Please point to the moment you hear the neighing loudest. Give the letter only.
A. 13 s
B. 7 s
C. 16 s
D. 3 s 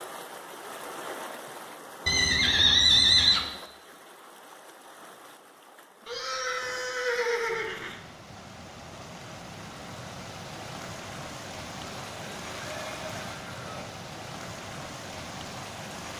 D.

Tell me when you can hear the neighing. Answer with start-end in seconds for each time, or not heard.
2.0-3.4, 6.0-8.0, 12.1-13.8.